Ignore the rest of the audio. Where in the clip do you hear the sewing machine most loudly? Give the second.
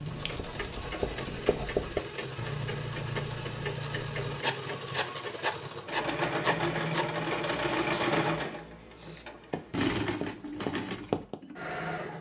8 s.